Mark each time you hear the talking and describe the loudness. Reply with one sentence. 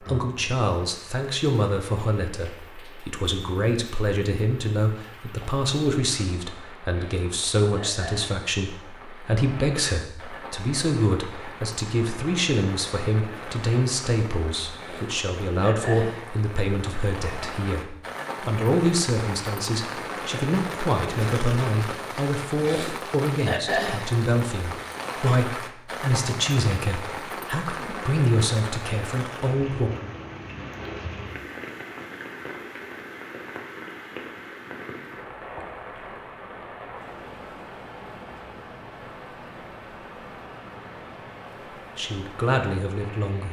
The talking can be heard from 0.0 to 29.9 s, at a steady volume; and briefly from 42.0 to 43.4 s.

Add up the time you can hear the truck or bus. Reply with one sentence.
You can't hear the truck or bus here.